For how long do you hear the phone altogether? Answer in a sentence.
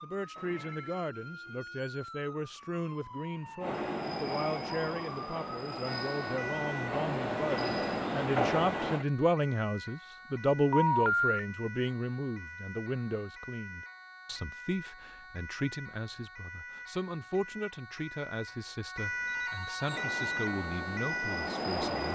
You can hear the phone for 3 seconds altogether.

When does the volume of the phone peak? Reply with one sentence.
The volume of the phone peaks at 11 seconds.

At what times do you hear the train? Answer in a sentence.
The train can be heard from 3.6 to 9.1 s and from 19.9 to 22.1 s.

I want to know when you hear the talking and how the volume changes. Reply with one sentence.
You can hear the talking from 0.0 to 22.1 s, getting louder then quieter.